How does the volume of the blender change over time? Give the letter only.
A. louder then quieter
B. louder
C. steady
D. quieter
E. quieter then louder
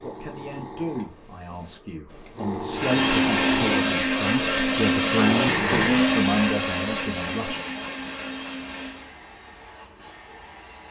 D.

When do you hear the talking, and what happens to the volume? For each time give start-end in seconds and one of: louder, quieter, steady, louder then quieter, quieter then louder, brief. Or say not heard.
0.0-7.6 louder.